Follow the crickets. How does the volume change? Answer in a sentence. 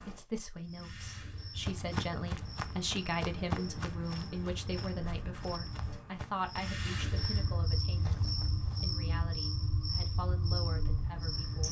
The volume of the crickets goes up.